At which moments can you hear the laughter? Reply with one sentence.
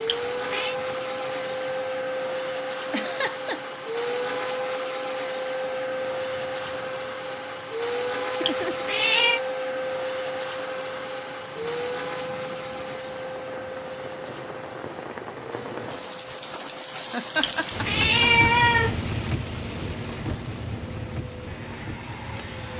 You can hear the laughter from 2.9 to 3.6 s, from 8.2 to 8.8 s and from 17.1 to 18.2 s.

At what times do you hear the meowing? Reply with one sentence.
You can hear the meowing from 0.1 to 0.8 s, from 8.4 to 9.4 s and from 17.4 to 19.0 s.